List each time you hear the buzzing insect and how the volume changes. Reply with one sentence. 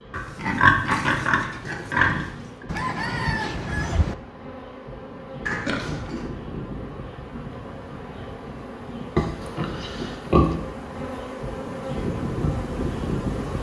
You can hear the buzzing insect from 0.0 to 13.5 s, getting louder.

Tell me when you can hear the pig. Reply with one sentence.
You can hear the pig from 0.1 to 2.4 s, from 5.5 to 6.3 s and from 9.2 to 10.6 s.